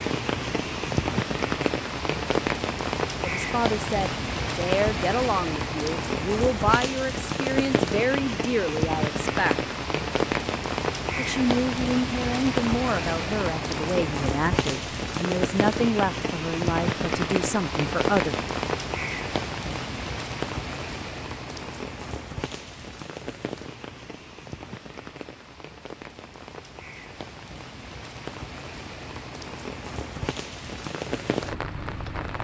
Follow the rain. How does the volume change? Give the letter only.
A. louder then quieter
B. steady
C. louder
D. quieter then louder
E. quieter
E.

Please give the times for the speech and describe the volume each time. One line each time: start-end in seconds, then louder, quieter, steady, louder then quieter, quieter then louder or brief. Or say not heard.
3.2-9.7 steady
11.2-18.4 steady.